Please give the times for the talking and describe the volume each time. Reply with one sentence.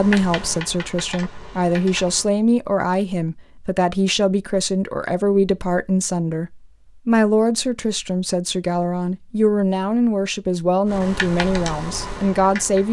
You can hear the talking from 0.0 to 12.8 s, at a steady volume.